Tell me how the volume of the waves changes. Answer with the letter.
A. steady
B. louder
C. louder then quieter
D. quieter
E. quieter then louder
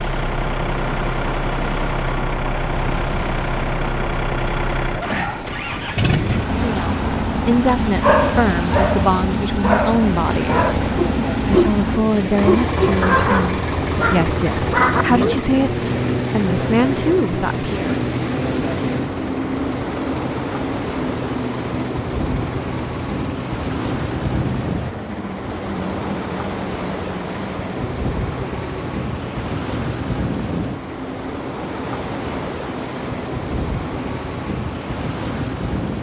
A.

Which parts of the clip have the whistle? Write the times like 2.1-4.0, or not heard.
not heard.